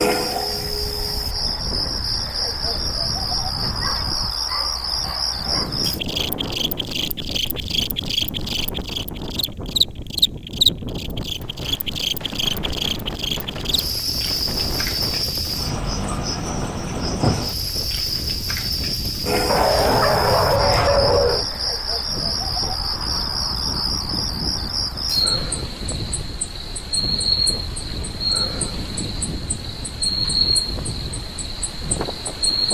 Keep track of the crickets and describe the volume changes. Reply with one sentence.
The volume of the crickets stays about the same.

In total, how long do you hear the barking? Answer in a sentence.
You can hear the barking for 4 seconds altogether.